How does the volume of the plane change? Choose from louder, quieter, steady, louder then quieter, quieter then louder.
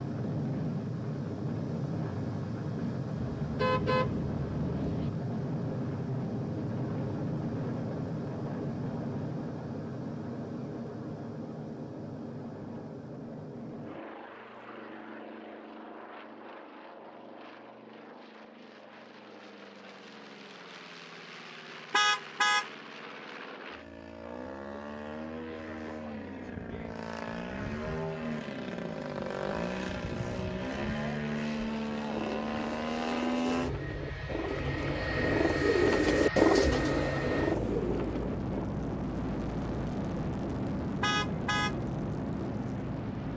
quieter then louder.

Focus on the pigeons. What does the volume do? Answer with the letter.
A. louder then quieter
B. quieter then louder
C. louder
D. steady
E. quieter
A.